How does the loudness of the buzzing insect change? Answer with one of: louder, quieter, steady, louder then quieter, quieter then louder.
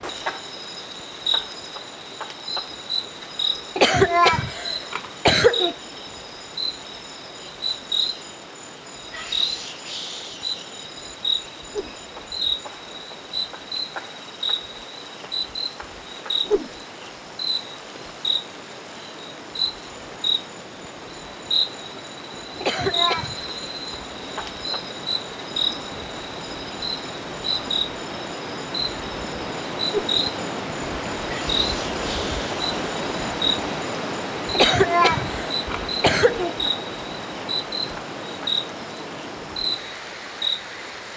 steady.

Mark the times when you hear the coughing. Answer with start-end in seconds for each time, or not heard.
3.8-5.8, 22.6-23.4, 34.5-36.5.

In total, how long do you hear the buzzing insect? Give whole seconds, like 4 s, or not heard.
41 s.